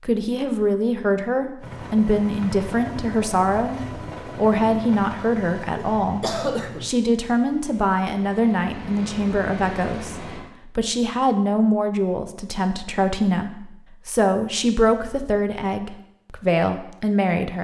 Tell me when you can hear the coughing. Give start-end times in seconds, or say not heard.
5.8-6.9.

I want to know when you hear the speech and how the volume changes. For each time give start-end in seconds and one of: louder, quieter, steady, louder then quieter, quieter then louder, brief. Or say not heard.
0.0-17.6 steady.